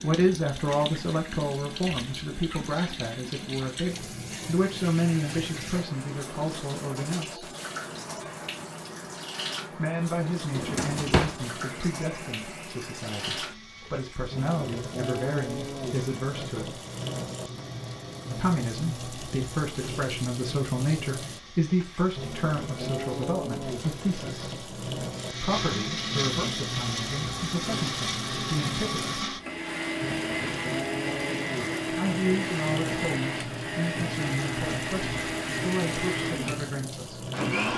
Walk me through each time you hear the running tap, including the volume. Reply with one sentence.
The running tap can be heard from 0.0 to 37.7 s, at a steady volume.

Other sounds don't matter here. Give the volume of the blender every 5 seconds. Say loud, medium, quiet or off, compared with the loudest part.
quiet, quiet, quiet, quiet, quiet, loud, loud, loud.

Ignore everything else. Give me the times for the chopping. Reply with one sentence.
The chopping can't be heard in this clip.